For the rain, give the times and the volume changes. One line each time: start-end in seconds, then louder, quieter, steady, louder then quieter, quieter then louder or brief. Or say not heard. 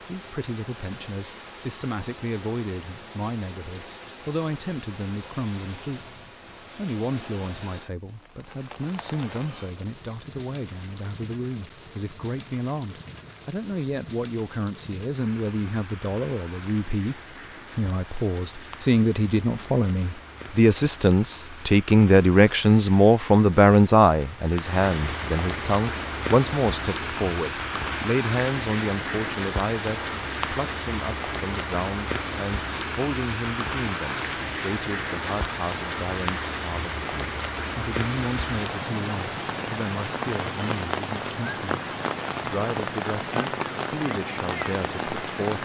0.0-45.5 louder.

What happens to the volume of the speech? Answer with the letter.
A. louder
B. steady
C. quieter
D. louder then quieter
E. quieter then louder
D.